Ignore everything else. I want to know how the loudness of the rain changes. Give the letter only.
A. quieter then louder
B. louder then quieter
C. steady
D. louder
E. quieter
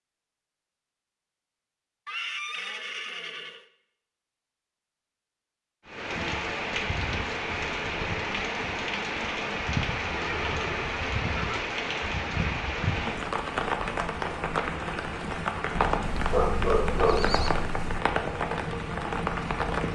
C.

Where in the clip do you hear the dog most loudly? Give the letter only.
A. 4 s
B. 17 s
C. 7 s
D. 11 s
B.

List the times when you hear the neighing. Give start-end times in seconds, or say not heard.
2.0-3.6, 10.1-11.7, 15.8-17.6.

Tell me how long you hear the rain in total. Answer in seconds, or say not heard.
14 s.